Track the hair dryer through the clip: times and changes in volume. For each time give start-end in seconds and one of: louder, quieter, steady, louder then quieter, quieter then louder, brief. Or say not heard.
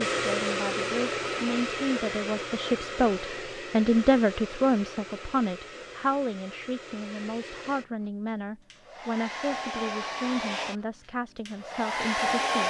0.0-12.6 quieter then louder.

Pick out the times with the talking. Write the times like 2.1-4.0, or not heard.
0.1-12.6.